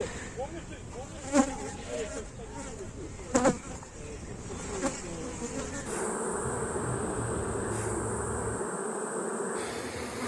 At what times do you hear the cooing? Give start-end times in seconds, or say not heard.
1.4-3.1, 6.4-8.7.